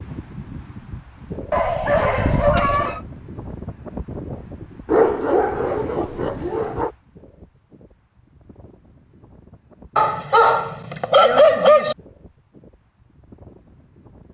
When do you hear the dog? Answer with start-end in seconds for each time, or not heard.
1.5-3.0, 4.8-6.9, 9.9-11.9.